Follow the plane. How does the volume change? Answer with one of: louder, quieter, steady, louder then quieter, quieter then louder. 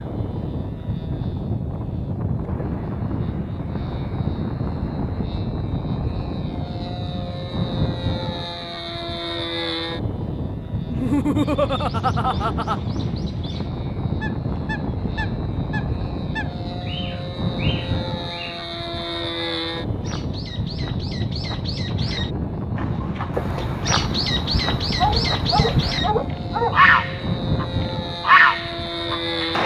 steady.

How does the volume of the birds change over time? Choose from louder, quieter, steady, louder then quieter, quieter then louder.
louder.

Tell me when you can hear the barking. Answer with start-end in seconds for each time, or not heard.
24.9-26.8.